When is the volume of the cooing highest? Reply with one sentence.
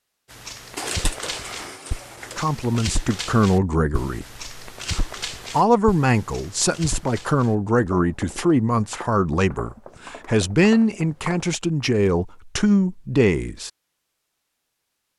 The volume of the cooing peaks at 1 second.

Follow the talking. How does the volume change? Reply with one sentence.
The loudness of the talking stays about the same.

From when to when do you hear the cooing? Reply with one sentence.
The cooing can be heard from 0.8 to 2.5 s.